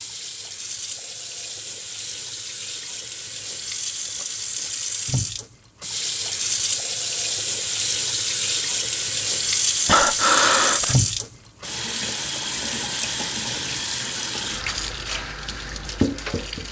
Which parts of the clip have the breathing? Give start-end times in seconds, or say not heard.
9.8-10.9.